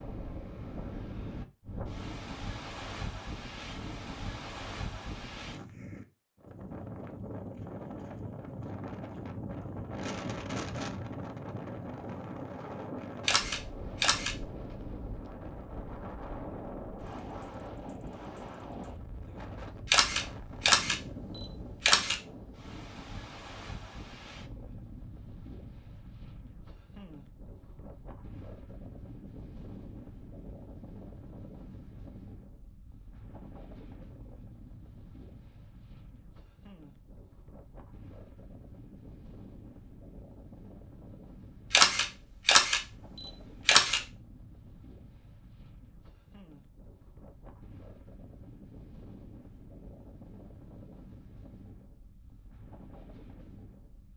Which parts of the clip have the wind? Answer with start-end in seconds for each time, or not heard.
0.0-54.1.